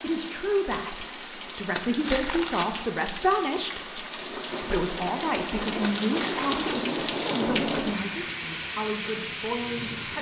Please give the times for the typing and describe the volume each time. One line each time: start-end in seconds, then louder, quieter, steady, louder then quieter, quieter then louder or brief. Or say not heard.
not heard.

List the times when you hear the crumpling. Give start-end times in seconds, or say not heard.
1.8-2.9, 6.0-7.0.